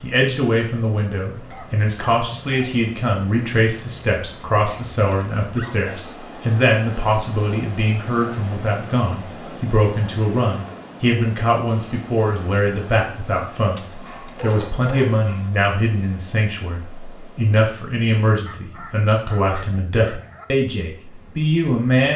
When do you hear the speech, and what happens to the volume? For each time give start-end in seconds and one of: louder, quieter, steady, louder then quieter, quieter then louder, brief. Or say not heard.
0.0-22.1 steady.